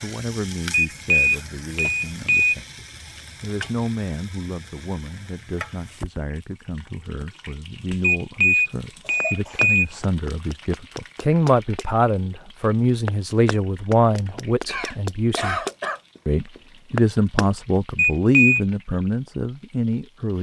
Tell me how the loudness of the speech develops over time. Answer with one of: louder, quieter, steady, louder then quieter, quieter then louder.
louder.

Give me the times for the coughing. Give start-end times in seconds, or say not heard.
1.3-1.9, 9.0-10.1, 14.7-16.0.